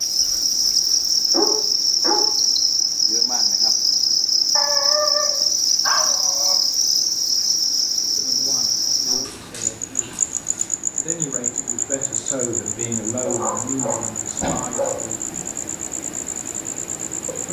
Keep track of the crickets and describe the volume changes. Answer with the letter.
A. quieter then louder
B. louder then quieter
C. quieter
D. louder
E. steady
C.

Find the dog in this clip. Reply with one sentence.
The dog can be heard from 0.2 to 2.3 s, from 4.5 to 6.5 s, from 9.2 to 10.7 s and from 13.2 to 15.1 s.